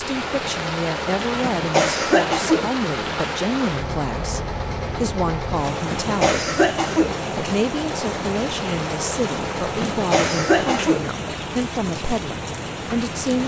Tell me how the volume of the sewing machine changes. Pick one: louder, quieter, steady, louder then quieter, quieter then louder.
steady.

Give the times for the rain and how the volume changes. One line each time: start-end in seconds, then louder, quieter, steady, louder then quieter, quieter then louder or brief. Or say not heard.
0.0-13.4 steady.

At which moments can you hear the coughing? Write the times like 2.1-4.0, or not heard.
1.4-2.9, 5.7-7.3, 9.6-11.3.